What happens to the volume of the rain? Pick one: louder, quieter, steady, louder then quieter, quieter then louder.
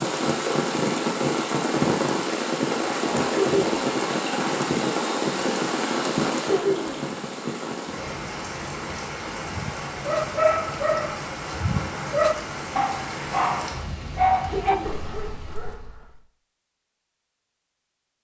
quieter.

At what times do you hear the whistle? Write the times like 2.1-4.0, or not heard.
not heard.